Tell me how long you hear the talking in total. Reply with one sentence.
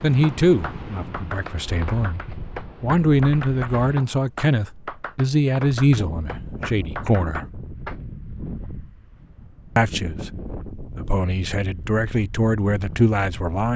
You can hear the talking for 11 seconds altogether.